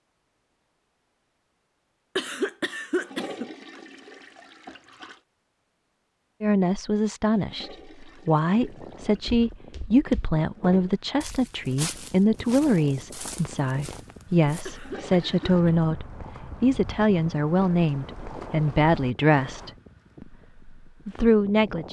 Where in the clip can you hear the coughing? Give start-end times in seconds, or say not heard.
2.1-3.5, 14.7-15.8.